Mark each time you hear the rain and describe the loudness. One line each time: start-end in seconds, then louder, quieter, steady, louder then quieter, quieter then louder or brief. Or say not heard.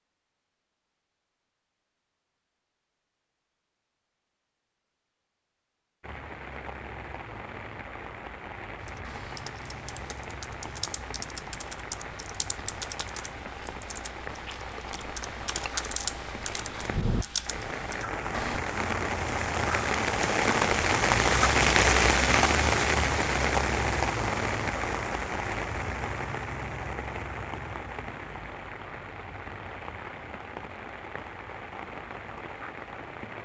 6.0-33.3 louder then quieter.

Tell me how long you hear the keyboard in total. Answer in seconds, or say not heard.
10 s.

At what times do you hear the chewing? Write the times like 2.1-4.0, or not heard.
not heard.